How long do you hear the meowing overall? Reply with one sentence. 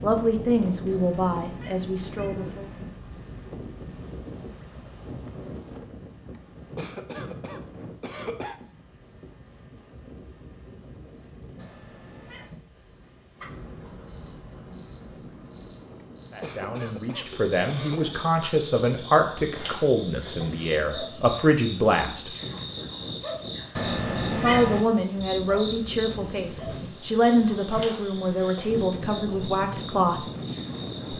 The meowing can be heard for 4 seconds in total.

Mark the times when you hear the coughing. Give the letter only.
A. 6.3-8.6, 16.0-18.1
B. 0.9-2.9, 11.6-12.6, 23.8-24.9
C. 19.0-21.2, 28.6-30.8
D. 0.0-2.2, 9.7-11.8
A.